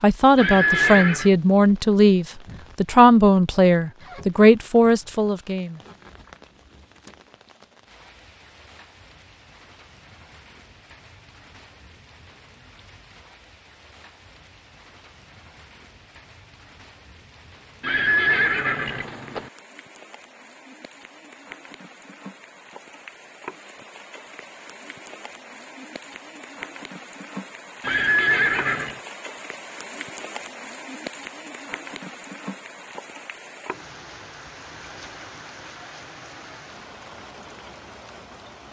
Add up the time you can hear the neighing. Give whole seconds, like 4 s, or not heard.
4 s.